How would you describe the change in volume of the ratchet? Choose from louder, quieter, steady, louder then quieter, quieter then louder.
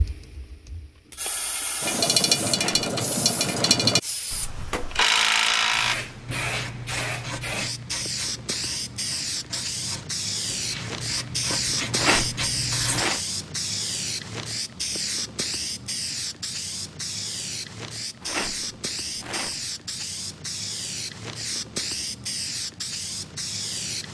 quieter then louder.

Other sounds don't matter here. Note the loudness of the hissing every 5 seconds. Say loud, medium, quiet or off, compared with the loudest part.
medium, loud, loud, loud, loud.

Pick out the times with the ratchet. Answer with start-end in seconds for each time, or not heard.
1.8-13.1.